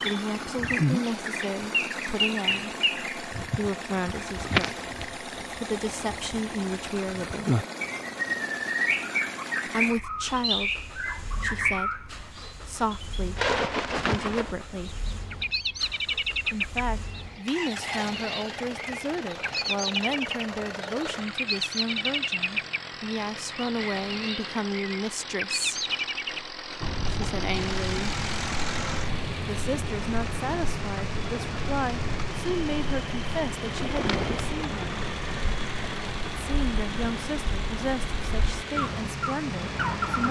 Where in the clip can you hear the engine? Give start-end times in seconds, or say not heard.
0.0-40.2.